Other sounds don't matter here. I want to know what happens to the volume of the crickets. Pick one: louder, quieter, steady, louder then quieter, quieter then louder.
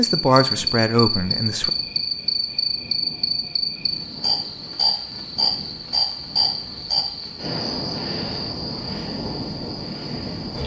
quieter.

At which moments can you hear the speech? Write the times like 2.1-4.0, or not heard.
0.0-1.7.